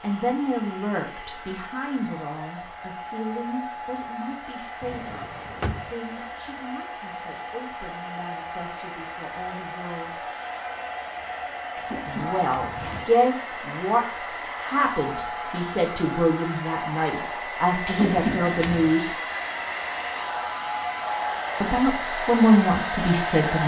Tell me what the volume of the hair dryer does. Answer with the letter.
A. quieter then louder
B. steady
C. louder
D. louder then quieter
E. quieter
C.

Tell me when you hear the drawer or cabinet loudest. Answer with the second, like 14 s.
18 s.